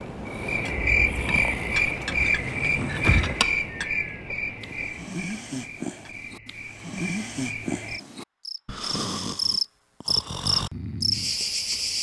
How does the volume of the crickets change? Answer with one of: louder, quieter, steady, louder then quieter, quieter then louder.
quieter then louder.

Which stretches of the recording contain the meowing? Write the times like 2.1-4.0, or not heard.
not heard.